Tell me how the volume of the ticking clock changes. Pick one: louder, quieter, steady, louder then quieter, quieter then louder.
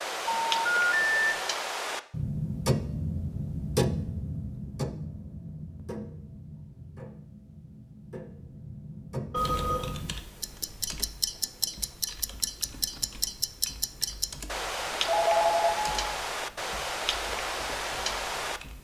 quieter then louder.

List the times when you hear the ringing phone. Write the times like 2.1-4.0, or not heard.
0.2-1.4, 9.3-9.9, 15.1-15.9.